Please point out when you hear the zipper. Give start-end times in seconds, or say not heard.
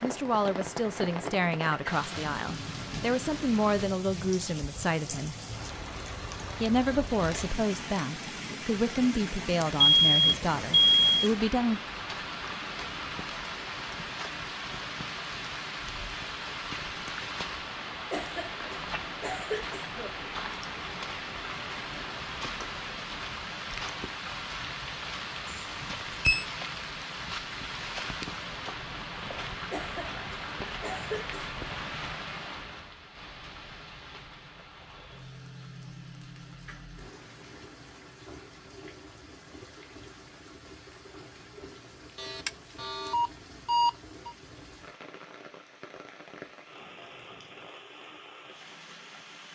not heard.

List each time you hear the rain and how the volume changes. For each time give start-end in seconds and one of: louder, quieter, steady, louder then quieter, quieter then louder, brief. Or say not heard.
0.0-49.5 quieter.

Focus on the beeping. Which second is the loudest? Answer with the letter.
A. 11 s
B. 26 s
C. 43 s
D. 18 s
A.